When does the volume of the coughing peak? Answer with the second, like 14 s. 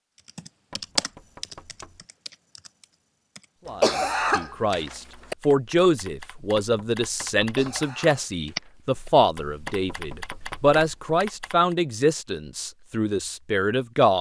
4 s.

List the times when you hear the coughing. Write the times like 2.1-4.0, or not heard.
3.6-5.3, 7.4-9.1.